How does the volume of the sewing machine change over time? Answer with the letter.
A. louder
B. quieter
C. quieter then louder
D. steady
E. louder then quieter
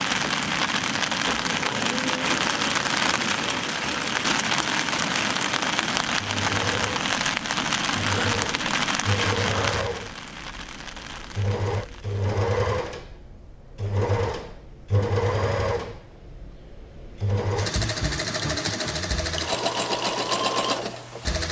A.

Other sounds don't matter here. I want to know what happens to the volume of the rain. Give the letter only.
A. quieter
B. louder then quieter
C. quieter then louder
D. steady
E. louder
A.